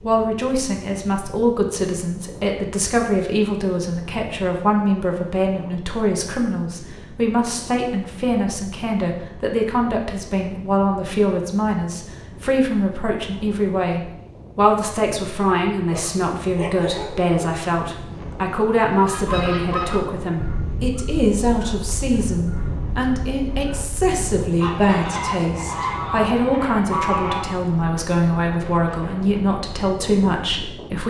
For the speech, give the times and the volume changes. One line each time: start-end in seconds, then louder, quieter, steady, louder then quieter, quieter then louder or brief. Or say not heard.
0.0-31.0 steady.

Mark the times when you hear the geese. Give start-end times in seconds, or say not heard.
19.0-27.6.